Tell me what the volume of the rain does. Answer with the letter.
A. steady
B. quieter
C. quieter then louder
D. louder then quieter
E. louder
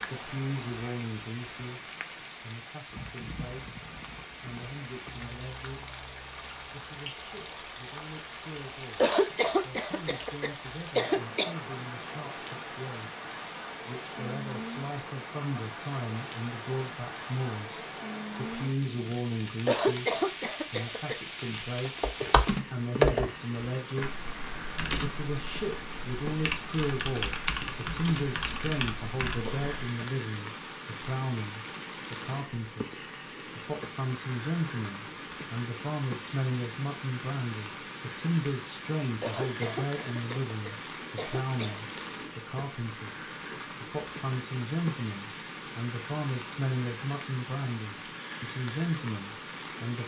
A.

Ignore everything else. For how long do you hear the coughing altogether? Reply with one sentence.
You can hear the coughing for 7 seconds altogether.